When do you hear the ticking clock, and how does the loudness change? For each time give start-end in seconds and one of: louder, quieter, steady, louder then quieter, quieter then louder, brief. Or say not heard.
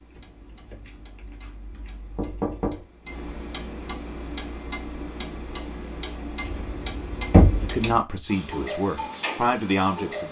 0.0-10.2 louder.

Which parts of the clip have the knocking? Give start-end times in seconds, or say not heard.
0.8-1.4, 2.1-2.9, 7.3-7.7.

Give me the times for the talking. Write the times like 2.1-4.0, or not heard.
7.6-10.2.